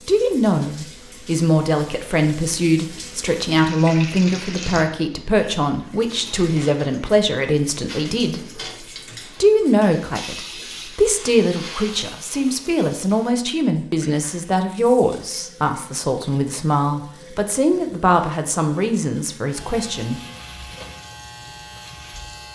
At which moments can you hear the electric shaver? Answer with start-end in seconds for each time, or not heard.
19.4-22.5.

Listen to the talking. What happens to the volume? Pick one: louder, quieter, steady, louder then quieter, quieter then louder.
steady.